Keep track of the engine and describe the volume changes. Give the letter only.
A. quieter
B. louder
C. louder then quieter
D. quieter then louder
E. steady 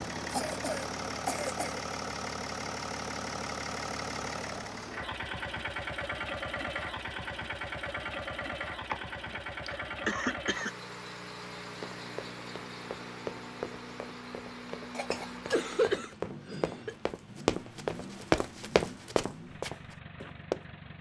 A.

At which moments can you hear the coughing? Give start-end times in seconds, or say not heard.
0.3-1.8, 8.9-10.8, 14.9-16.9.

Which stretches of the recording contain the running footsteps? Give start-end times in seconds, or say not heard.
11.8-20.6.